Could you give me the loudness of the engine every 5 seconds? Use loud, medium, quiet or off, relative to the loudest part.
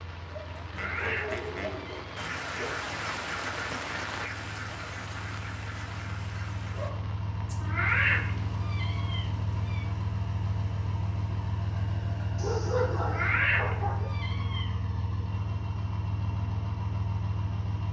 quiet, loud, loud, loud.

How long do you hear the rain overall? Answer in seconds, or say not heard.
12 s.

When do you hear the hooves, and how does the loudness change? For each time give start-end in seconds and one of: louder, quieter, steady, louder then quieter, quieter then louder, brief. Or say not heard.
not heard.